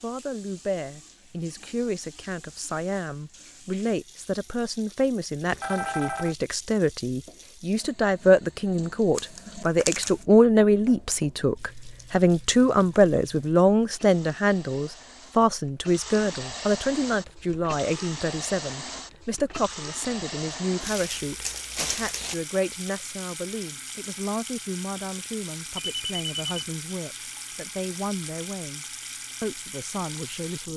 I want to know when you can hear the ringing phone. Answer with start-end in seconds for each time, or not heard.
5.5-6.3, 25.8-26.8.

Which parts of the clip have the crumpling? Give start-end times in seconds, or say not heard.
9.2-10.2, 20.8-22.4.